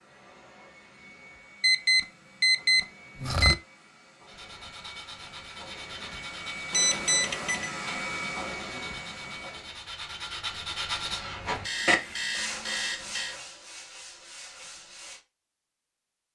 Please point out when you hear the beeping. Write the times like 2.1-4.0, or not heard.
1.6-3.5, 6.7-7.8, 11.6-13.3.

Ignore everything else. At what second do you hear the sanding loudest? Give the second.
12 s.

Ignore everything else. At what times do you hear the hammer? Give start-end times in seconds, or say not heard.
not heard.